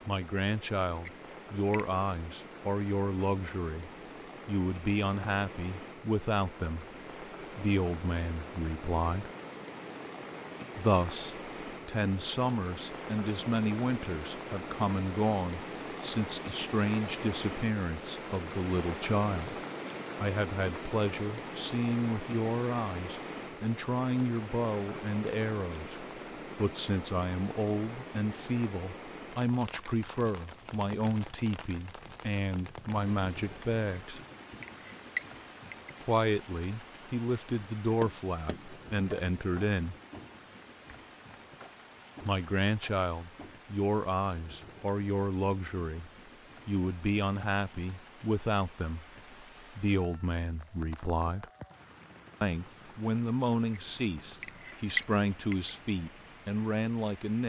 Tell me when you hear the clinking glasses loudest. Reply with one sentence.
The volume of the clinking glasses peaks at 55 seconds.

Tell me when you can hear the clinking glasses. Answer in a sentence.
The clinking glasses can be heard from 1.1 to 1.9 s, from 34.0 to 35.9 s and from 53.7 to 55.7 s.